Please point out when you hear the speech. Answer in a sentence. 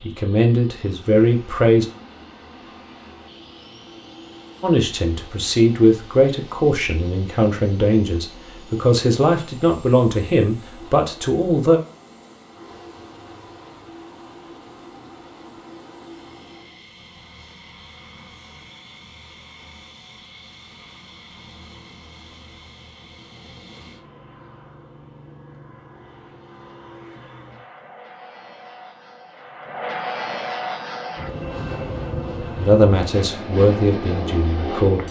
You can hear the speech from 0.0 to 1.9 s, from 4.6 to 11.8 s and from 32.5 to 35.0 s.